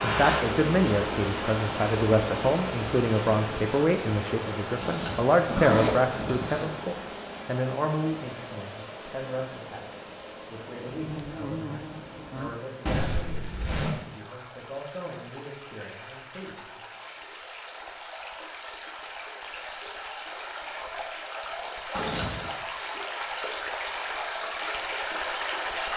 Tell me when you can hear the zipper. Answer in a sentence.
The zipper can be heard from 4.8 to 6.8 s, from 12.8 to 13.9 s and from 21.9 to 22.6 s.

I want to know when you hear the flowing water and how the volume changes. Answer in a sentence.
You can hear the flowing water from 0.0 to 25.9 s, getting quieter then louder.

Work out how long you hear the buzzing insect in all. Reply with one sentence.
The buzzing insect can be heard for 2 seconds in total.